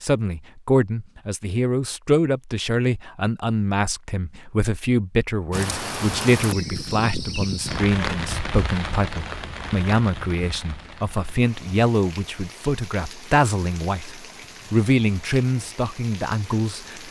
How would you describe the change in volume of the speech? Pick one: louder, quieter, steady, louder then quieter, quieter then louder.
steady.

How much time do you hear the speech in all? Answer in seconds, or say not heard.
17 s.